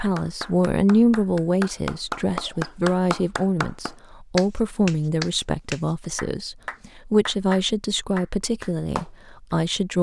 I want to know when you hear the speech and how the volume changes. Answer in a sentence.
The speech can be heard from 0.0 to 9.9 s, getting quieter.